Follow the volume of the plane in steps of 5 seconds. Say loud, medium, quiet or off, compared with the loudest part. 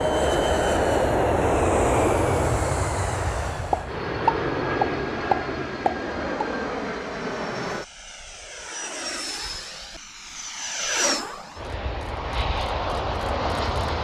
loud, medium, medium.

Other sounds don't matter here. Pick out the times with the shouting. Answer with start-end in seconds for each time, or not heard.
not heard.